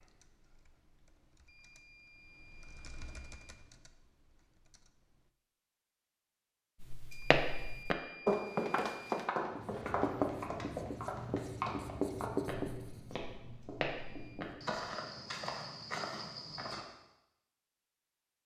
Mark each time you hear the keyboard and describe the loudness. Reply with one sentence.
You can hear the keyboard from 0.0 to 5.3 s, getting louder then quieter.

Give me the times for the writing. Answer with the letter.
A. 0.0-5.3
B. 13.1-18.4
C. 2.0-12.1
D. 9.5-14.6
D.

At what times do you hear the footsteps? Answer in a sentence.
You can hear the footsteps from 6.8 to 16.9 s.